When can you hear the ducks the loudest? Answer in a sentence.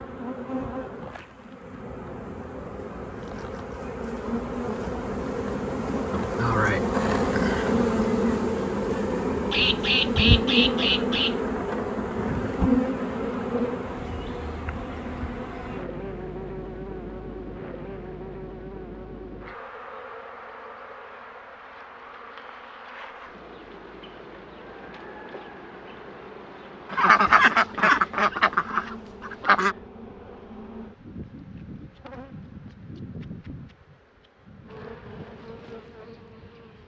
The volume of the ducks peaks at 27 seconds.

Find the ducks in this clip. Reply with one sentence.
You can hear the ducks from 9.5 to 11.3 s and from 26.9 to 29.8 s.